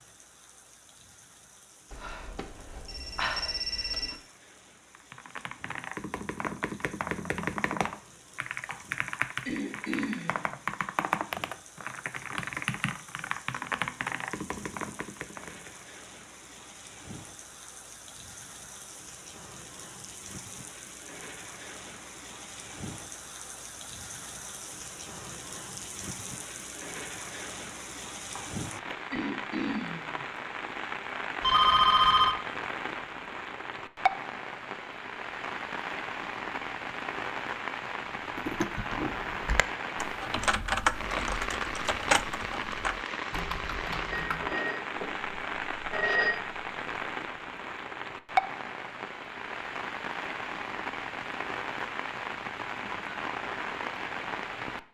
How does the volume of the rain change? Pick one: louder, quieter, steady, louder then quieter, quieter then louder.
louder.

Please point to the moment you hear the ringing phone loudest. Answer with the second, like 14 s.
32 s.